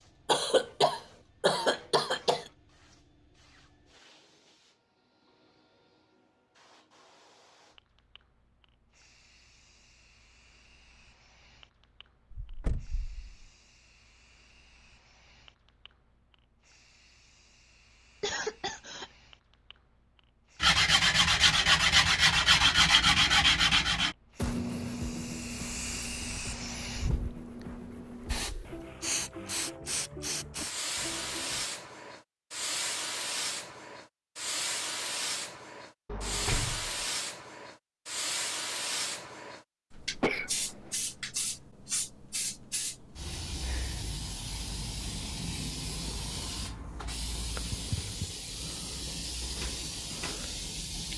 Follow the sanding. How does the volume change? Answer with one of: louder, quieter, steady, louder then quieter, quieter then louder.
quieter.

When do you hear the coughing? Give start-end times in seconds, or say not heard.
0.2-2.5, 18.2-19.1, 40.2-41.0.